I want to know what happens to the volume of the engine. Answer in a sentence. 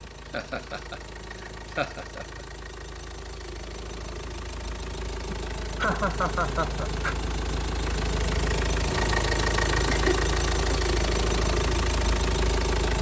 The loudness of the engine goes up.